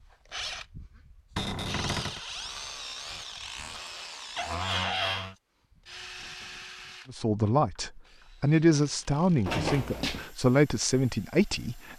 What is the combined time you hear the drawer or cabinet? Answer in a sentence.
You can hear the drawer or cabinet for 3 seconds altogether.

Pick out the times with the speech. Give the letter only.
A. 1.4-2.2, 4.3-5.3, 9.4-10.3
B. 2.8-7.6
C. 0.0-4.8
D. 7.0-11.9
D.